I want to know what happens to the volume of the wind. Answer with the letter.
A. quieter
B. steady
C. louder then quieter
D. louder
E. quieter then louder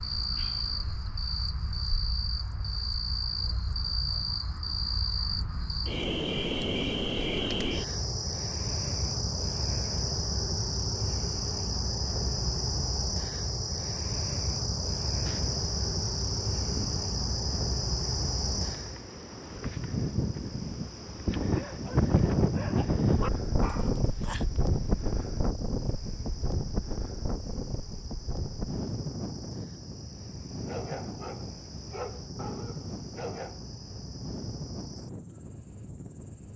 C.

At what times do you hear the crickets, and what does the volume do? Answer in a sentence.
You can hear the crickets from 0.0 to 36.5 s, getting quieter.